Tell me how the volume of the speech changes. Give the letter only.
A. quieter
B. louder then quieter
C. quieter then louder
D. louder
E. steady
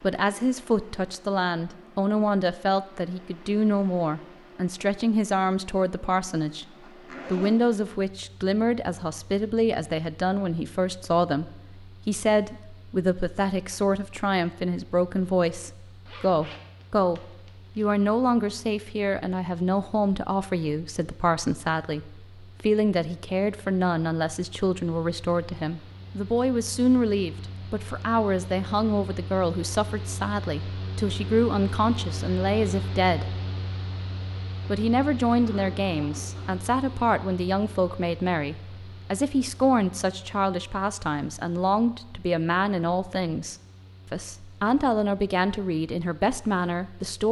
E.